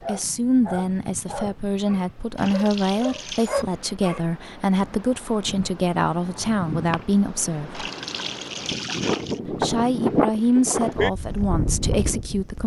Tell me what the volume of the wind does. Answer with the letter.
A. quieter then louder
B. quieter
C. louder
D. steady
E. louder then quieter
C.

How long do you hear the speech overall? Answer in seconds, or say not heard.
11 s.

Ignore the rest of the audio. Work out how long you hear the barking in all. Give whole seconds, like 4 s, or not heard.
4 s.